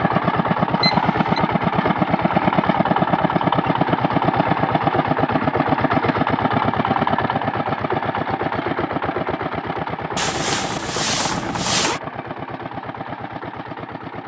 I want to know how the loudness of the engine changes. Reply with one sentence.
The loudness of the engine goes down.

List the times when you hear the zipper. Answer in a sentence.
You can hear the zipper from 10.2 to 12.0 s.